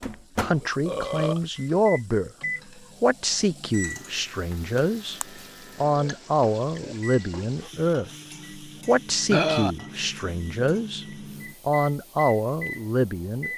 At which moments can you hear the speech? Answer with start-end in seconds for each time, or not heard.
0.0-2.3, 3.0-5.2, 5.8-13.5.